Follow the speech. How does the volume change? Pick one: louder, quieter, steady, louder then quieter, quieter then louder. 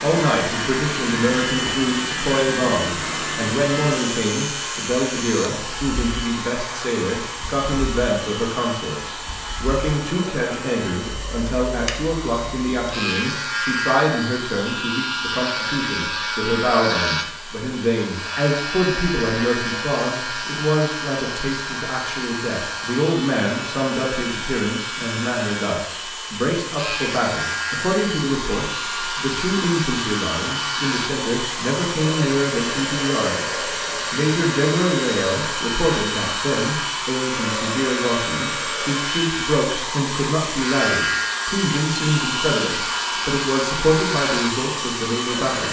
steady.